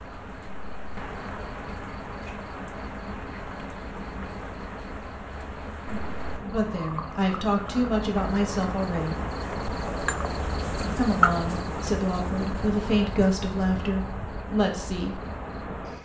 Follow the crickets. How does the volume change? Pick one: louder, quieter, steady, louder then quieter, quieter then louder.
louder then quieter.